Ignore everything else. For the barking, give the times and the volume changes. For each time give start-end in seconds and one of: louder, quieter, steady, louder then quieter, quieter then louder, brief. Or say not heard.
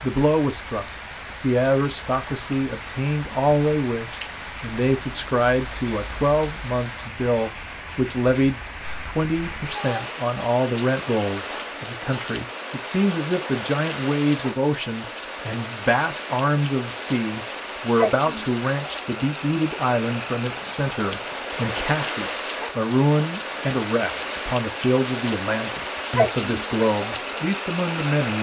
not heard.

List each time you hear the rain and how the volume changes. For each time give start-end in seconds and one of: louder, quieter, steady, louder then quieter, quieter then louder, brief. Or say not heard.
0.0-28.3 louder.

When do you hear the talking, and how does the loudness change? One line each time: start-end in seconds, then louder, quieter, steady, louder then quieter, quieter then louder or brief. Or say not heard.
0.0-28.3 steady.